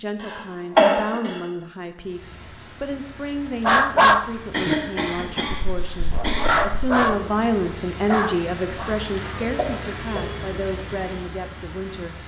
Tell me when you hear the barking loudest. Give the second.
4 s.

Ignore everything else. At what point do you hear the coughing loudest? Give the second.
1 s.